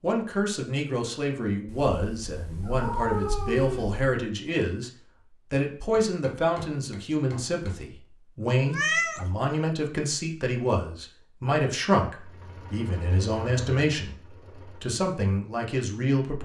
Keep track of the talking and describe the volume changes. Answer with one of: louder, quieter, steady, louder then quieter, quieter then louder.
steady.